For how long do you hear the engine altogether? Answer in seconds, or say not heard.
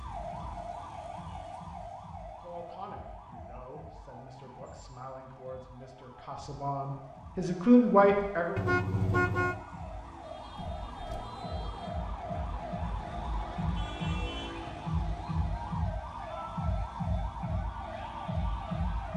2 s.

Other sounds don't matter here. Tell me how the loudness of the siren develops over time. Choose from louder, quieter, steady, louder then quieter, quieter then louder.
quieter then louder.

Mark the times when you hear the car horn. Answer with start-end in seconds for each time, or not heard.
8.6-9.7.